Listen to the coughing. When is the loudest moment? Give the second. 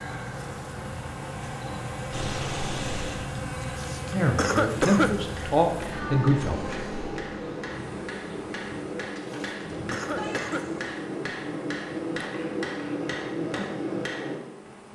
5 s.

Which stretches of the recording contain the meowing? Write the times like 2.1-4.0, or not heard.
2.1-3.2, 5.9-7.2, 10.2-10.8.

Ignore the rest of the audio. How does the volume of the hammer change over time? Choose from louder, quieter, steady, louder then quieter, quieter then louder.
louder.